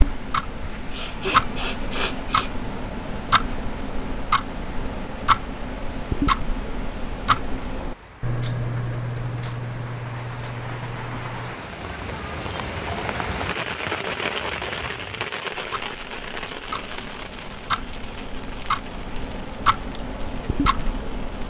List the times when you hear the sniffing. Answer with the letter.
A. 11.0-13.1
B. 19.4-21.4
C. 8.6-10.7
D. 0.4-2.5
D.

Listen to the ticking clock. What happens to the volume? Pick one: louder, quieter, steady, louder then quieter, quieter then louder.
quieter then louder.